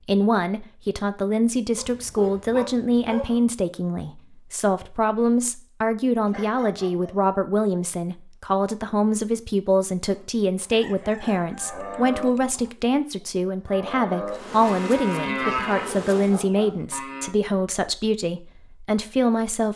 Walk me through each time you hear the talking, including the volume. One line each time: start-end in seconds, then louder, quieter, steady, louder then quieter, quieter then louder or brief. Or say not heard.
0.1-19.7 steady.